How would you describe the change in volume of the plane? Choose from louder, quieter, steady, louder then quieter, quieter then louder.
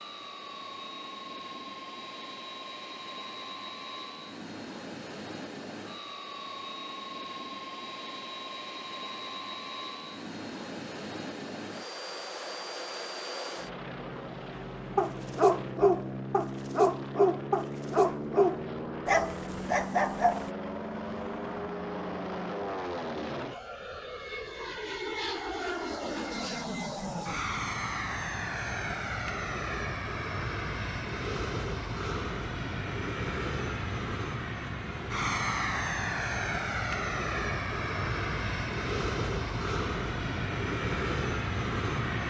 louder.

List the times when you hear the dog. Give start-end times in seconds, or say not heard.
14.9-20.5.